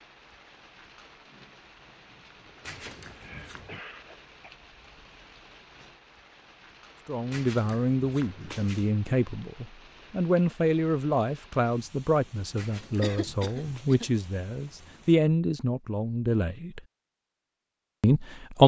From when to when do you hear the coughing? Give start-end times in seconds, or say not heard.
2.6-4.5, 13.0-14.1.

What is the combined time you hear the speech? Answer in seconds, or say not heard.
10 s.